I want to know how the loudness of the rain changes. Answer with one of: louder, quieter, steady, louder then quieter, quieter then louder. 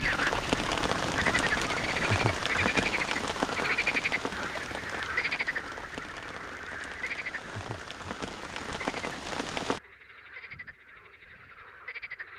quieter then louder.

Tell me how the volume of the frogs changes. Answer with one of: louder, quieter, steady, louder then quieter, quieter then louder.
quieter.